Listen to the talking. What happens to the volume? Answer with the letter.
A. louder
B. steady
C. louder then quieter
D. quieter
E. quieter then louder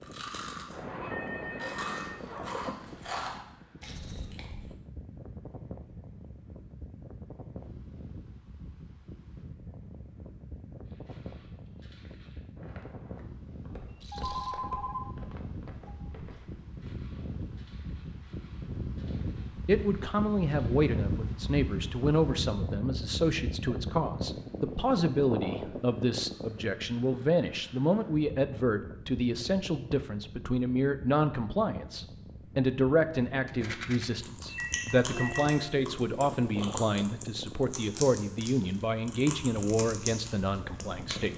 B.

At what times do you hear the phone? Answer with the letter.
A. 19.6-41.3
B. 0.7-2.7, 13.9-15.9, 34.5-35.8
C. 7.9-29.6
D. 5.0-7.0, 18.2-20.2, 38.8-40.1
B.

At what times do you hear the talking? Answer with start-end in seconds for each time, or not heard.
19.6-41.3.